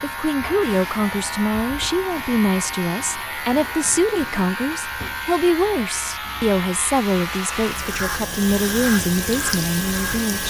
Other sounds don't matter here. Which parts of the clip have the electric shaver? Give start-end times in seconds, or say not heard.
0.0-10.4.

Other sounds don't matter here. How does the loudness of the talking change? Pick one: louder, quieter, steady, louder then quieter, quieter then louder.
steady.